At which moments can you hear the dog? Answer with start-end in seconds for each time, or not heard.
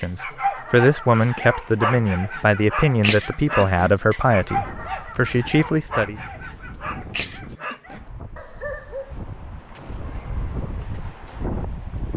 0.0-9.2.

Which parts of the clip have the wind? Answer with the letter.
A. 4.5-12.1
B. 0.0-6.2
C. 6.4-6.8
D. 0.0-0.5
A.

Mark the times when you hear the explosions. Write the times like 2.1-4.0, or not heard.
9.7-10.2.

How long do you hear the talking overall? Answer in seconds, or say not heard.
6 s.